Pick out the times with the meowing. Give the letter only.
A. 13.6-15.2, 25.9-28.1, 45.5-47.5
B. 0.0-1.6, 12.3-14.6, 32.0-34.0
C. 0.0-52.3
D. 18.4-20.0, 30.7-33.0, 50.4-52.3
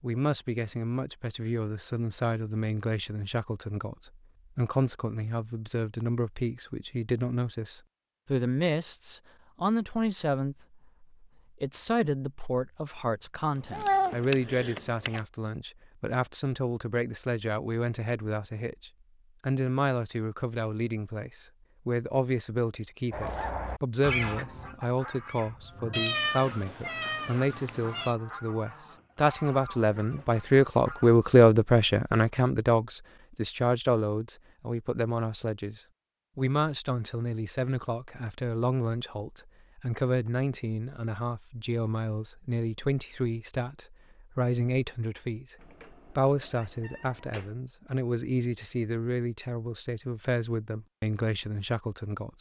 A.